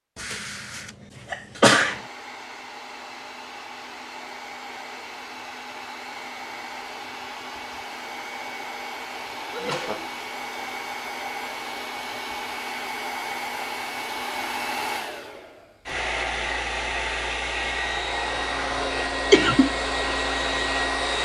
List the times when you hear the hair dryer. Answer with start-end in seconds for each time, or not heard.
1.9-21.2.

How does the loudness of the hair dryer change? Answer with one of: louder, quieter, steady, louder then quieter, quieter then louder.
louder.